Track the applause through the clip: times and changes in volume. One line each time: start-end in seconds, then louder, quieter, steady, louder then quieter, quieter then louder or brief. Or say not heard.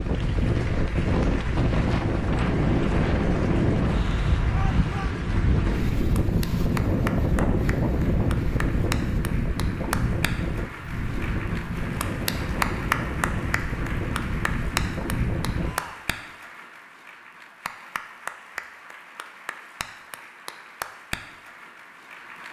0.0-22.4 louder then quieter.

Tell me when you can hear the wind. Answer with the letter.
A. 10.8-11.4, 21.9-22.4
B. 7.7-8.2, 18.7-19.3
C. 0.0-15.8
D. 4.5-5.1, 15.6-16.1
C.